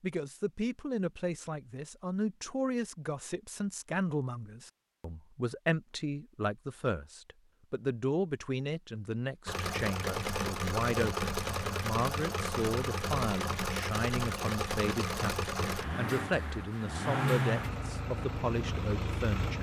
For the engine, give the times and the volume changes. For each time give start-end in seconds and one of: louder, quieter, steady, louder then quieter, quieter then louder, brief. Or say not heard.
9.4-19.5 steady.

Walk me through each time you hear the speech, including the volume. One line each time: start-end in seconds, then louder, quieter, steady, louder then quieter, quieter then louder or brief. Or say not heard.
0.0-19.5 steady.